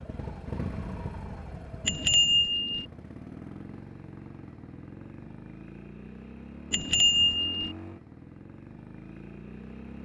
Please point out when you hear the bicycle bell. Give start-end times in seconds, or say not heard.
1.9-2.9, 6.7-7.8.